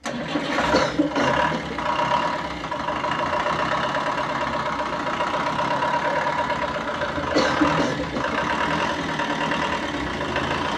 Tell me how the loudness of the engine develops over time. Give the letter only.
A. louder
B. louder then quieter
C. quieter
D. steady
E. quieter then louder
D.